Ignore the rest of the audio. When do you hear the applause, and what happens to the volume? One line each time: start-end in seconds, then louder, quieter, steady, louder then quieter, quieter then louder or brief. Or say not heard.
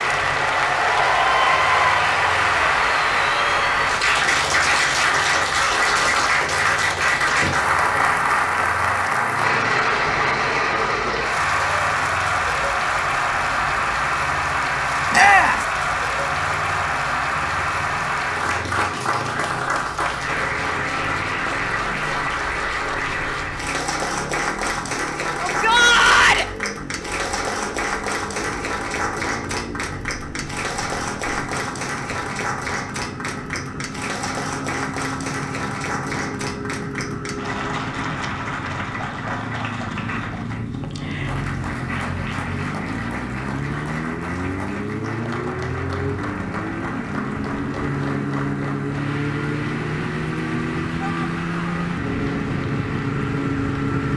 0.0-54.1 quieter.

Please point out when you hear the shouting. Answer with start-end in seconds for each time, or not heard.
15.1-15.7, 25.4-26.4, 51.0-51.9.